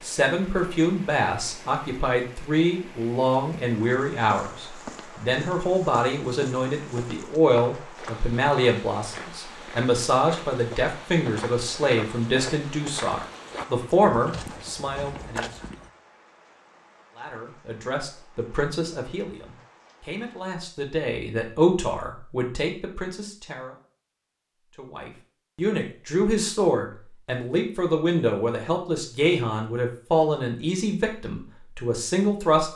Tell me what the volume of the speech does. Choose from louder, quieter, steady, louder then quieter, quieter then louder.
steady.